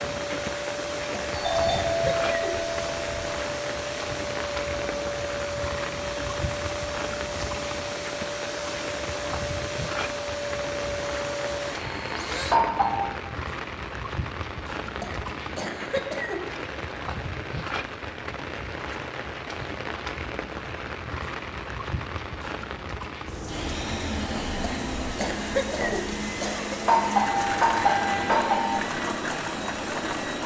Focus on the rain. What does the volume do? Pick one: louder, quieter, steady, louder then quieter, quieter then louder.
steady.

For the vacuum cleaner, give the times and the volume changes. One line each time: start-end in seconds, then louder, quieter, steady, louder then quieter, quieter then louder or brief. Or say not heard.
0.0-12.6 steady
23.4-30.4 steady.